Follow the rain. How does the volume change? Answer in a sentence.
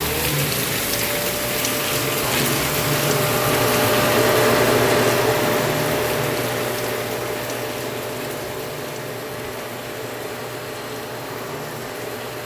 The volume of the rain goes down.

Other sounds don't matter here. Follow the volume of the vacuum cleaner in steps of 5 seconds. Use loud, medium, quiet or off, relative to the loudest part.
loud, loud, medium.